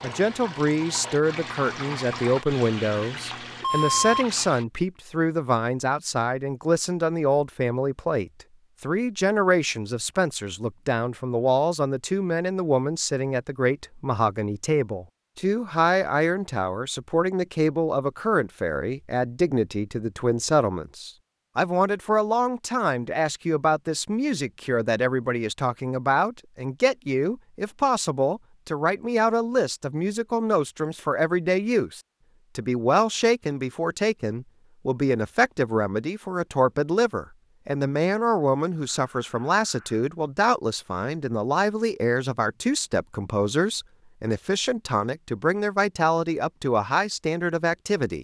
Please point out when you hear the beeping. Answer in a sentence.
The beeping can be heard from 3.6 to 4.2 s and from 38.9 to 40.0 s.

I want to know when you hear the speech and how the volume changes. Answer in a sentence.
You can hear the speech from 0.0 to 48.1 s, at a steady volume.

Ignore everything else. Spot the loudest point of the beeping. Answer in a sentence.
The loudest moment of the beeping is at 4 seconds.